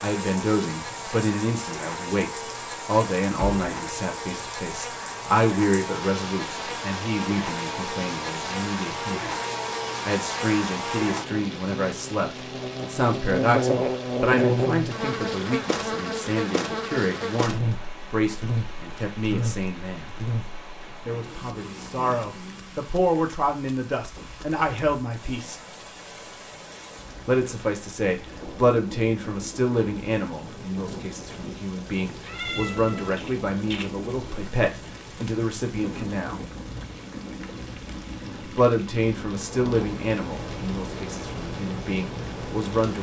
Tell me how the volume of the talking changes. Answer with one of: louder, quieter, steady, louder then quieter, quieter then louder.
steady.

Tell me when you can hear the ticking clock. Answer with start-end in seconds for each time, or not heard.
not heard.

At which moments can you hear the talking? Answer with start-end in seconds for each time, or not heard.
0.0-9.3, 10.1-20.1, 21.1-25.6, 27.2-36.4, 38.4-42.9.